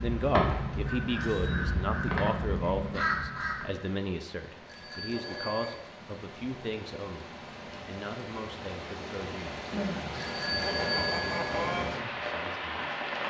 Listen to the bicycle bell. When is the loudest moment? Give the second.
11 s.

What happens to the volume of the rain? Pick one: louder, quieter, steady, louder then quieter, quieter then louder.
louder.